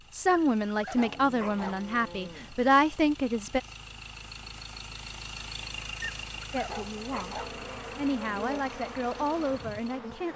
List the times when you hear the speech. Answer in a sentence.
The speech can be heard from 0.1 to 3.6 s and from 6.5 to 10.3 s.